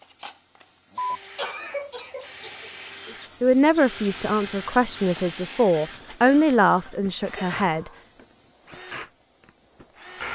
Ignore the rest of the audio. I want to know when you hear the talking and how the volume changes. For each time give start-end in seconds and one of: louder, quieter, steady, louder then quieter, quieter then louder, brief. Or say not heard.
3.4-7.9 louder then quieter.